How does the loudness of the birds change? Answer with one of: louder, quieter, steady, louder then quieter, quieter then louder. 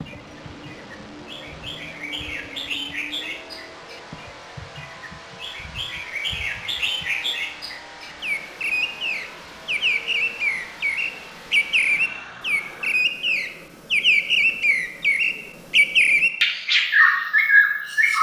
louder.